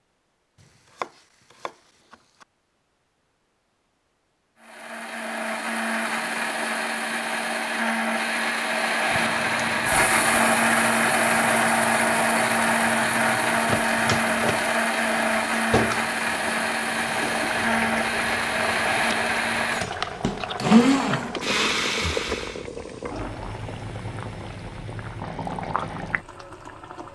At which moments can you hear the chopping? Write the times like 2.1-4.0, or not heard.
0.6-2.5, 13.7-14.7.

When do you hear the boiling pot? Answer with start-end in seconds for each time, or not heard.
9.1-27.1.